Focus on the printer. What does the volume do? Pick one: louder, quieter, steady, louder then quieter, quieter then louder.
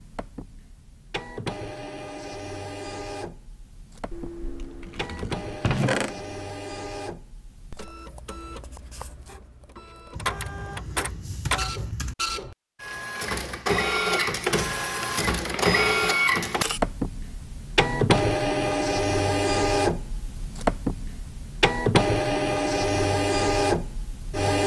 louder.